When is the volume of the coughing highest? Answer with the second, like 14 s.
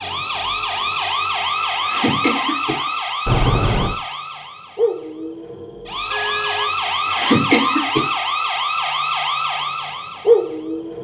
7 s.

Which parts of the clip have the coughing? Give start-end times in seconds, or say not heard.
1.6-2.9, 6.8-8.1.